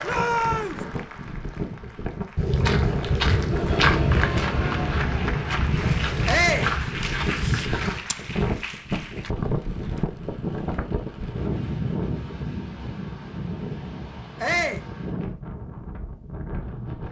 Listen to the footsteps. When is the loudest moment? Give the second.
4 s.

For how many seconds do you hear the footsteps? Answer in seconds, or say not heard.
6 s.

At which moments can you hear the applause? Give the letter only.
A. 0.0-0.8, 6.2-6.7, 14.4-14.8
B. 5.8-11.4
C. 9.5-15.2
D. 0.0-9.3
D.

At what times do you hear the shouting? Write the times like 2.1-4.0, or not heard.
0.0-0.8, 6.2-6.7, 14.4-14.8.